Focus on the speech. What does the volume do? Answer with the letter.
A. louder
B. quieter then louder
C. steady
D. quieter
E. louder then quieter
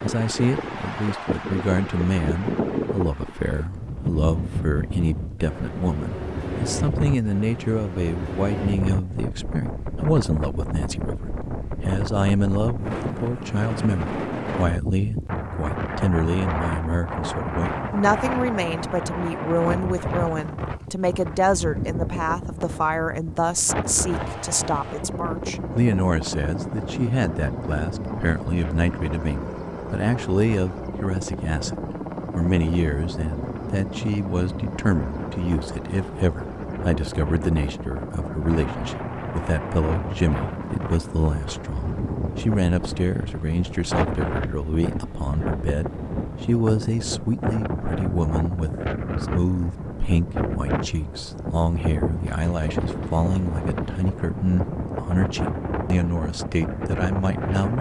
C.